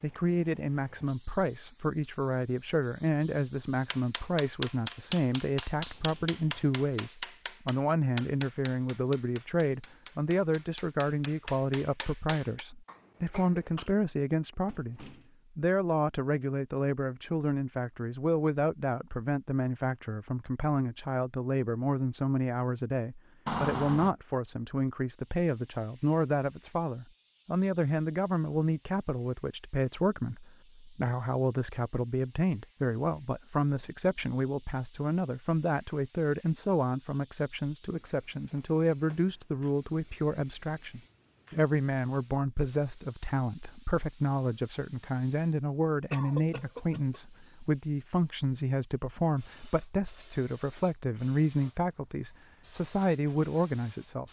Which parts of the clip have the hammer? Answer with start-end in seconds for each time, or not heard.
3.9-12.7.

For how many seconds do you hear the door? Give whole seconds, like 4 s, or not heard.
3 s.